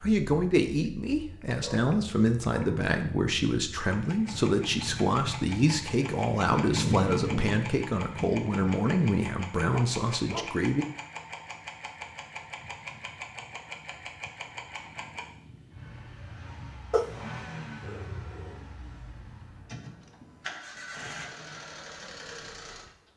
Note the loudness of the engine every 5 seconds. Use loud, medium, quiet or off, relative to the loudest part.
medium, loud, medium, medium, medium.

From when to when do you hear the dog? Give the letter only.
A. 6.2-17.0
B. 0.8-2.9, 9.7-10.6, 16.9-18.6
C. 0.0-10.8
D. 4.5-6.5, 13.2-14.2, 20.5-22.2
B.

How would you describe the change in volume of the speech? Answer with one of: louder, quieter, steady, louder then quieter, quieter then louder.
steady.